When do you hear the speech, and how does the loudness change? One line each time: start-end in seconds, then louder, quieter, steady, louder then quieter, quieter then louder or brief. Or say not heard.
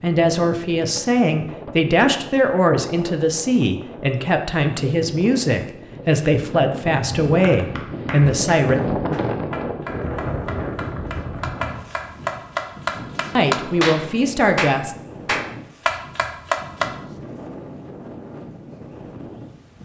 0.0-8.8 steady
13.3-14.9 brief.